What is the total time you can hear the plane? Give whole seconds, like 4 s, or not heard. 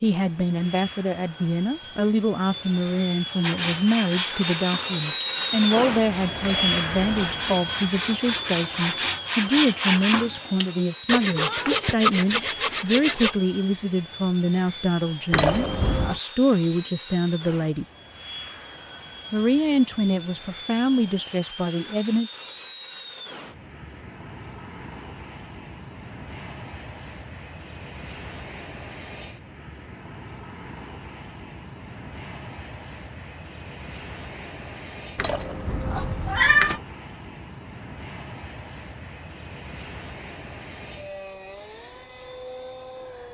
43 s.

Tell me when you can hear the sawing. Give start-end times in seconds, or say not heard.
3.4-13.3.